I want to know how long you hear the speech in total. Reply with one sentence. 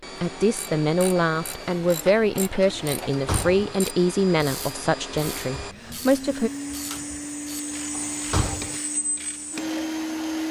You can hear the speech for 6 seconds altogether.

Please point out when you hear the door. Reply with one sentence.
You can hear the door from 3.1 to 3.8 s and from 7.9 to 8.8 s.